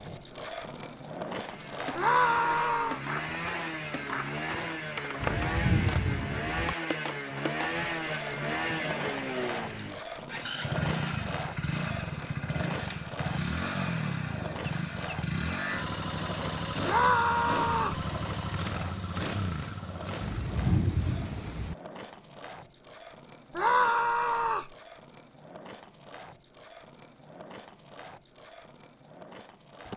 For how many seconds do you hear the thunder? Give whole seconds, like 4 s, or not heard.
3 s.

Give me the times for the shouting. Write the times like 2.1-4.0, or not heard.
1.9-3.0, 16.8-18.0, 23.6-24.7.